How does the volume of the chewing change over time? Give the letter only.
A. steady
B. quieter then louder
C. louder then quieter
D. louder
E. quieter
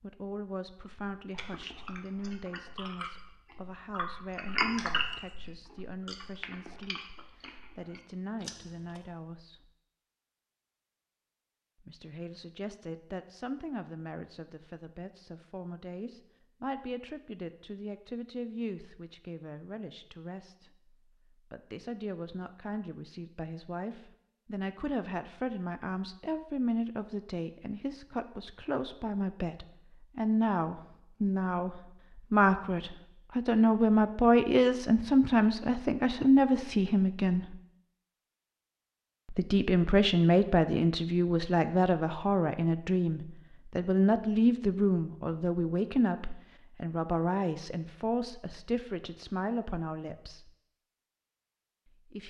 C.